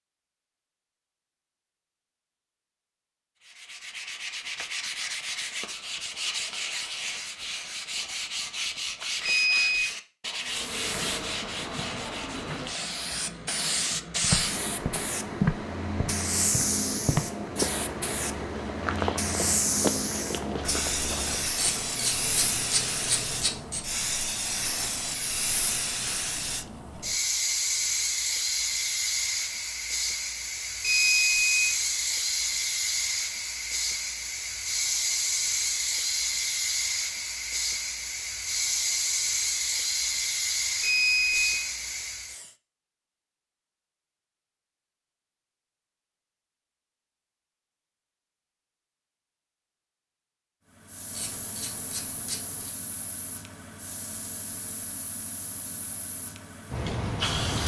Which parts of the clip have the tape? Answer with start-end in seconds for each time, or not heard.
not heard.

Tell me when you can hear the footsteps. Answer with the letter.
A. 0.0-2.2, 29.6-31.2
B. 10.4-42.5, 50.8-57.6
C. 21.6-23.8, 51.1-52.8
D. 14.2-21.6
D.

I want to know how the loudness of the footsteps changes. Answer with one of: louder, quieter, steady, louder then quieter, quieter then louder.
quieter.